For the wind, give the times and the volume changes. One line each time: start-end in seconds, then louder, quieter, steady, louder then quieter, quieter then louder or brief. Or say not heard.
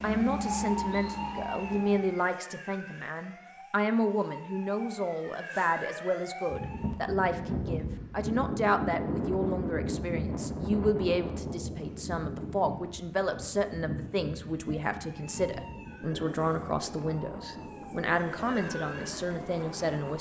6.5-20.1 quieter.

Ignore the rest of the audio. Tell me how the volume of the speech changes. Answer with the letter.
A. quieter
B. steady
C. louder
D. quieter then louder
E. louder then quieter
B.